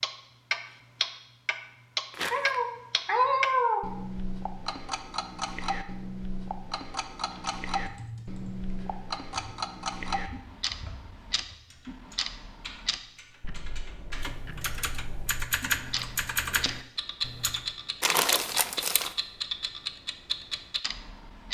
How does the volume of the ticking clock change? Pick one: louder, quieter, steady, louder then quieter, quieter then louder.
quieter then louder.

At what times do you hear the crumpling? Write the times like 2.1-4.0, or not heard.
2.1-2.5, 18.0-19.1.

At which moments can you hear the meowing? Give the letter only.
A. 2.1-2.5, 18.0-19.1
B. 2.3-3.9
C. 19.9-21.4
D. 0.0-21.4
B.